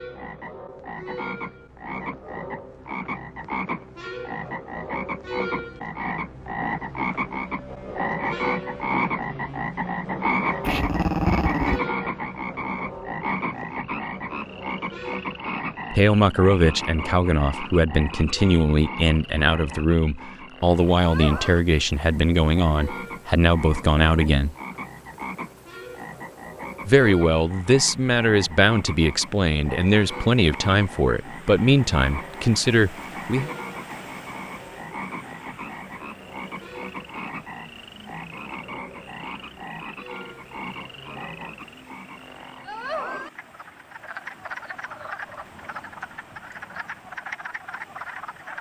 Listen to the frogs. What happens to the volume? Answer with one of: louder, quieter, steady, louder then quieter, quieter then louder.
quieter.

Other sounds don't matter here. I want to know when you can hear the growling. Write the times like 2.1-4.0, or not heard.
10.6-11.8.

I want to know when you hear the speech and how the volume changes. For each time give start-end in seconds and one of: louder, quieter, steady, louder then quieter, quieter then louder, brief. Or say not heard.
15.9-24.6 steady
26.9-33.5 steady.